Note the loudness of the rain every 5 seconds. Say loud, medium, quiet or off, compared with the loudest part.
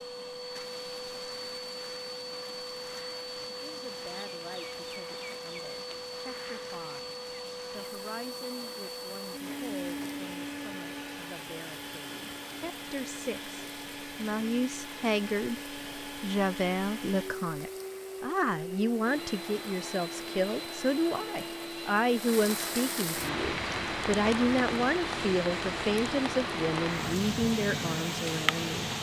quiet, quiet, quiet, quiet, loud, loud.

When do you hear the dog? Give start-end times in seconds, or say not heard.
not heard.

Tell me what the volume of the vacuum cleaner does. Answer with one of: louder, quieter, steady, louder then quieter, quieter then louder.
steady.